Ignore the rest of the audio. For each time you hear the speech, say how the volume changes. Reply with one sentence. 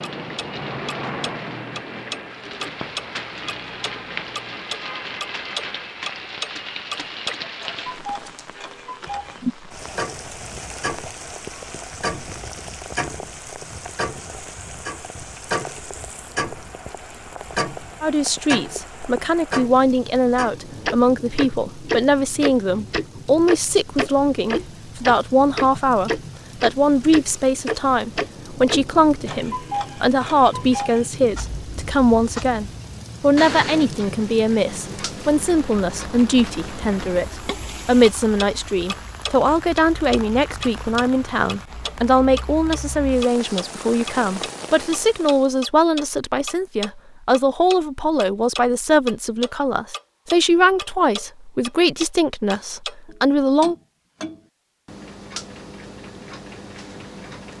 You can hear the speech from 18.0 to 53.8 s, at a steady volume.